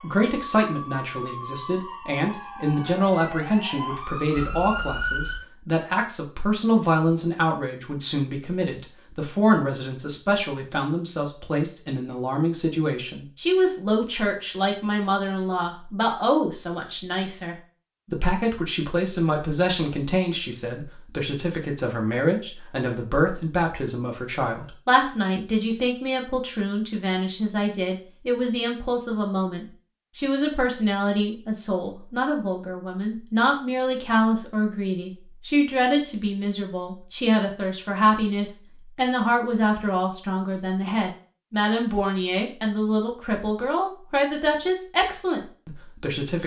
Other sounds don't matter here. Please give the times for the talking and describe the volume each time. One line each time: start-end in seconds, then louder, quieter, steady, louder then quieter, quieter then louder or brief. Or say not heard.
0.0-46.4 steady.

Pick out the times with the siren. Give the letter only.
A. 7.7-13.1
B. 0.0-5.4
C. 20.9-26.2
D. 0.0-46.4
B.